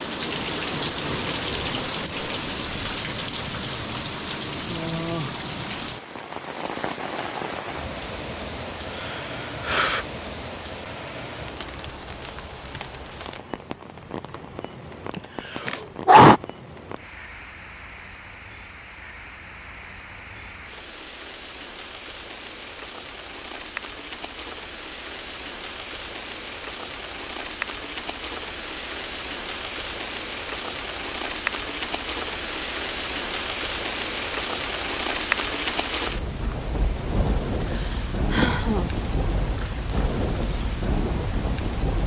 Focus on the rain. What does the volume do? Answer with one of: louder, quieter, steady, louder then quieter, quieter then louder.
quieter then louder.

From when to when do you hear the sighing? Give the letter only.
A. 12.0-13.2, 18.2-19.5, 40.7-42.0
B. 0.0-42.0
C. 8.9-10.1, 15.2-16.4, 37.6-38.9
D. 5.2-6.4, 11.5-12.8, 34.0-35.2
C.